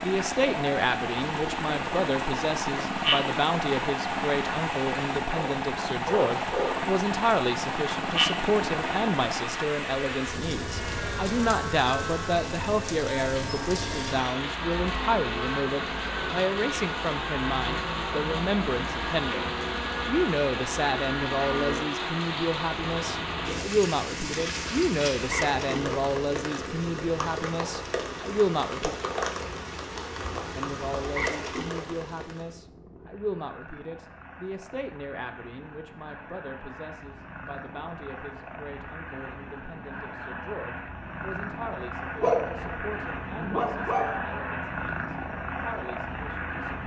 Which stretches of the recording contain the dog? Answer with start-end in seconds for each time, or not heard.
5.3-6.9, 42.1-44.2.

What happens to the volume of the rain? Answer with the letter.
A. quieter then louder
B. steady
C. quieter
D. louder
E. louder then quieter
B.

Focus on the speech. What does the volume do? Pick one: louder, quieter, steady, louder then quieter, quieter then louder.
quieter.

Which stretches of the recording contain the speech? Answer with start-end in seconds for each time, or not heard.
0.0-28.9, 30.6-46.8.